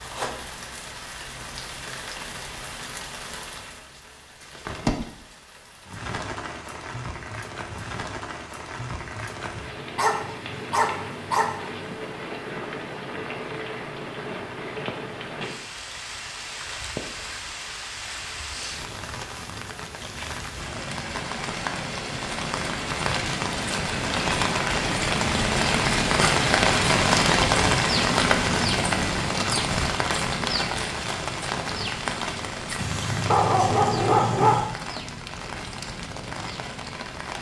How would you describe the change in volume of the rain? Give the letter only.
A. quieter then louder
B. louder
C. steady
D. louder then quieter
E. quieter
D.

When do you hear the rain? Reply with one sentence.
You can hear the rain from 0.0 to 37.3 s.